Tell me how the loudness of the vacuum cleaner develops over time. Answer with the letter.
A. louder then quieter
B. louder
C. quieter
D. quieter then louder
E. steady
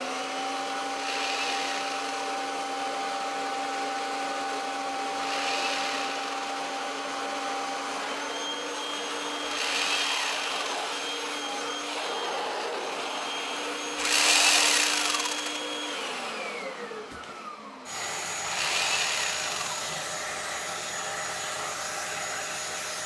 E.